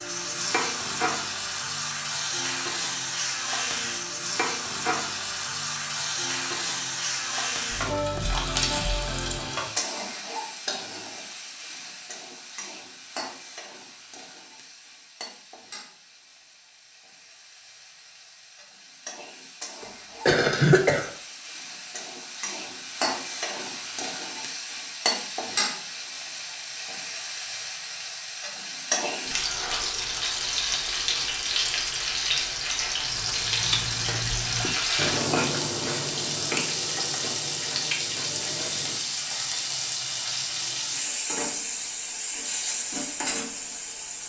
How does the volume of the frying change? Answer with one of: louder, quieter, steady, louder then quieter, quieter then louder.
quieter then louder.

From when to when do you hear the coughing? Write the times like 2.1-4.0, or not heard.
19.8-21.1.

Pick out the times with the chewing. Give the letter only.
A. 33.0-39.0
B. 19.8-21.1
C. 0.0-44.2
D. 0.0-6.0
A.